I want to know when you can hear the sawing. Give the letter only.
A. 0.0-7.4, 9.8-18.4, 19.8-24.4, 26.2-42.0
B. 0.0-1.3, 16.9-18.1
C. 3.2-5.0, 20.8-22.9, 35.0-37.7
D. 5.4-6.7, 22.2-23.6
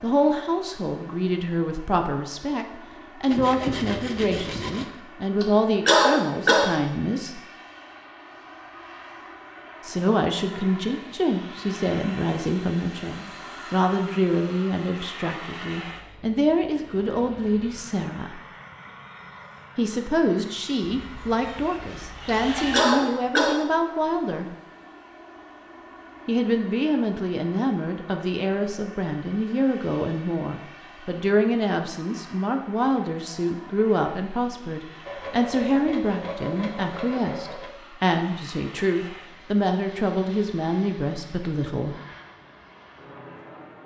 C.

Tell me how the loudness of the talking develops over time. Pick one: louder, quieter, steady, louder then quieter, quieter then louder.
steady.